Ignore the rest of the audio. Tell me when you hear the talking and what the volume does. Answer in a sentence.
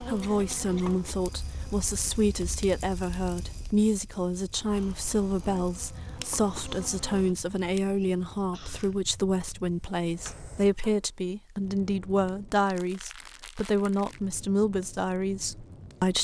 The talking can be heard from 0.0 to 16.1 s, at a steady volume.